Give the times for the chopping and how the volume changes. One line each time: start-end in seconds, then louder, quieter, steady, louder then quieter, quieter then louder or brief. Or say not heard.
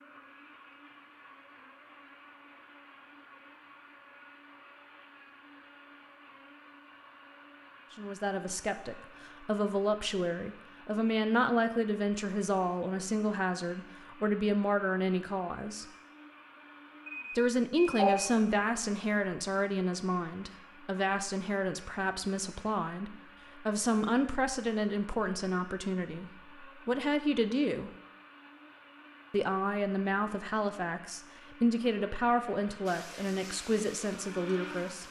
not heard.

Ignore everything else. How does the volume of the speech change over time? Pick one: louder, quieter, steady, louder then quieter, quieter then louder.
steady.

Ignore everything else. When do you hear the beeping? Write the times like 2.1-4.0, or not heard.
17.1-18.3.